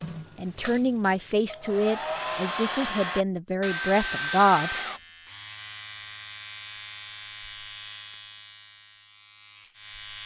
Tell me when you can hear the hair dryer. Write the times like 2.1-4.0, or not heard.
0.0-5.0.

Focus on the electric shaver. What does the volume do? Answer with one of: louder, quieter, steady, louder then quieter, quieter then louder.
quieter.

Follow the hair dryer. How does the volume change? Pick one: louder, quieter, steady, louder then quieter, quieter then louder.
louder.